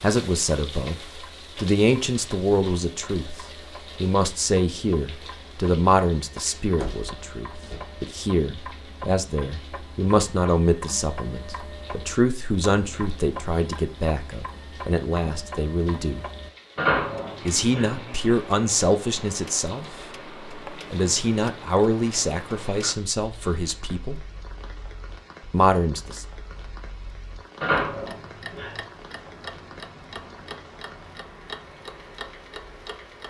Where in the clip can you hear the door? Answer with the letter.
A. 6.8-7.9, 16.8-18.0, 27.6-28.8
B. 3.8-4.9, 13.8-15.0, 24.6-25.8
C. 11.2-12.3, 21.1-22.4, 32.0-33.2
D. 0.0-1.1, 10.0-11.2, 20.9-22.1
A.